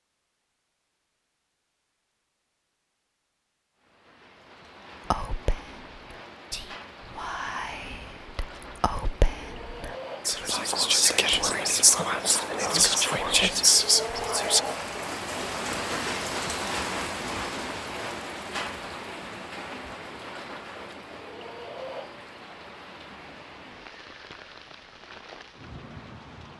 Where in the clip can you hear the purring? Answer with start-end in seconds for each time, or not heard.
not heard.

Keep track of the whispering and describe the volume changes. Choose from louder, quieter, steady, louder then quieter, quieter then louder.
louder.